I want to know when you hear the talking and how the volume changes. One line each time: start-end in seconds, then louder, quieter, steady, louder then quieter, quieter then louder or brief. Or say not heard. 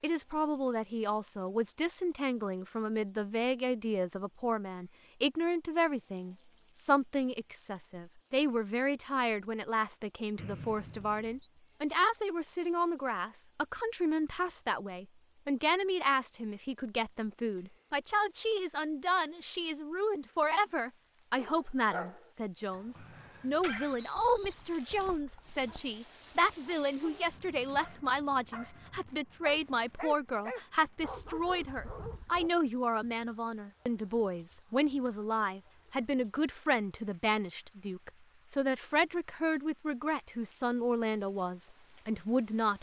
0.0-42.7 steady.